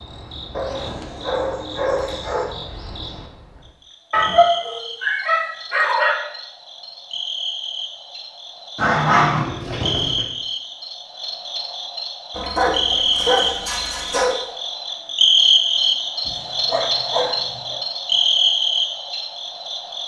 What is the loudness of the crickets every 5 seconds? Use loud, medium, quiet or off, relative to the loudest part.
quiet, quiet, medium, loud.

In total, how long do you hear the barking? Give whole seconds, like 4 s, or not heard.
9 s.